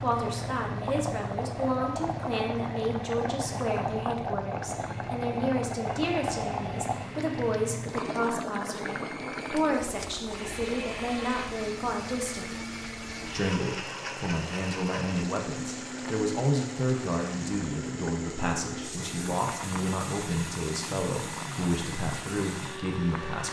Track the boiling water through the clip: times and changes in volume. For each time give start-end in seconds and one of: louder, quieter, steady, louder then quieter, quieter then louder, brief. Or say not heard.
0.0-23.4 quieter.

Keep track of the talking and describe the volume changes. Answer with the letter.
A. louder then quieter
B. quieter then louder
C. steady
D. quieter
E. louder
C.